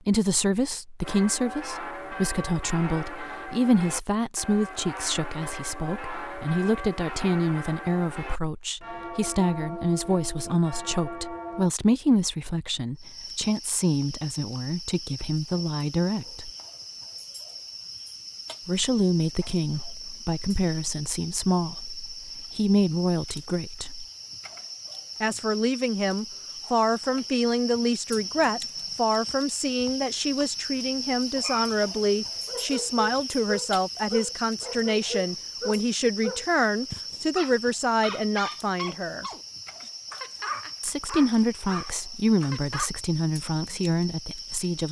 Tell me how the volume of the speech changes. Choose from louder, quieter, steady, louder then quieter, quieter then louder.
steady.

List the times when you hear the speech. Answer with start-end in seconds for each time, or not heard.
0.1-16.5, 18.6-24.1, 25.2-39.2, 40.8-44.8.